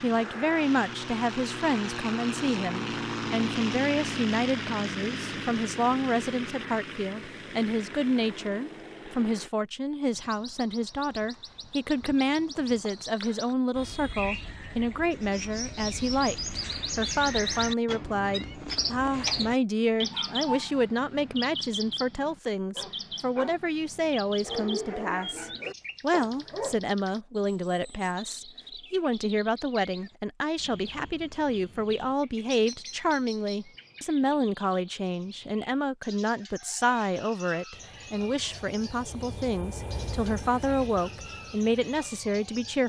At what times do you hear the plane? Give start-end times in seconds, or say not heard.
0.0-9.5, 37.7-42.8.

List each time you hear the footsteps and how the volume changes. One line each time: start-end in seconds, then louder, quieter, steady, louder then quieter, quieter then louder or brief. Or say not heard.
not heard.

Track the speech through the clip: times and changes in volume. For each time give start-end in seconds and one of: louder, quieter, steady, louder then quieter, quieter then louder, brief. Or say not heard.
0.0-42.8 steady.